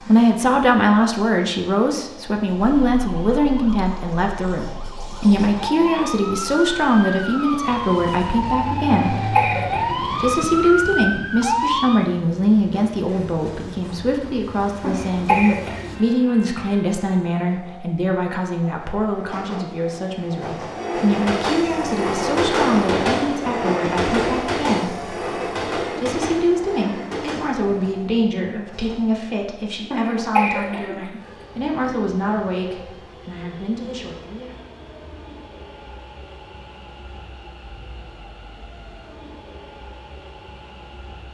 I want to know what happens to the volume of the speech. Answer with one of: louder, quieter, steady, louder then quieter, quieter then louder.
quieter.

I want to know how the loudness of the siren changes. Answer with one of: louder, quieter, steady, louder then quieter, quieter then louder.
louder.